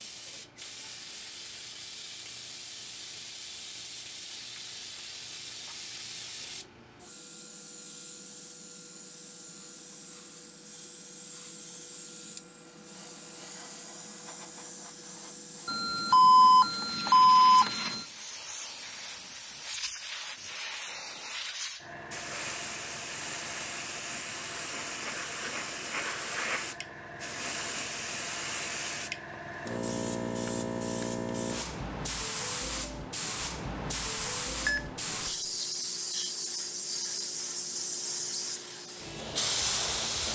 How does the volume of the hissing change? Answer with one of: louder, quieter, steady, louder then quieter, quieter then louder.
louder.